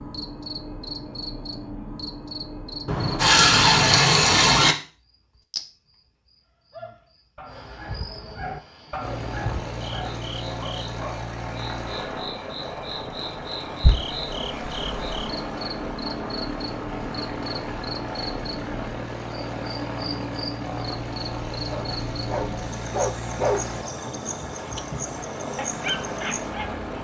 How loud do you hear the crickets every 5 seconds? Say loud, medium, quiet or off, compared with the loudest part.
loud, medium, loud, loud, loud, loud.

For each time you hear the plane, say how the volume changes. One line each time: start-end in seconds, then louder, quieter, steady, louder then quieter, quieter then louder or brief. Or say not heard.
8.9-26.9 steady.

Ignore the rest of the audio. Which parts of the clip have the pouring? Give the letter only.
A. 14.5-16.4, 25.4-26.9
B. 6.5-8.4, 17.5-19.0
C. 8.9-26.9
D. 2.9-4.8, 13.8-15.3
D.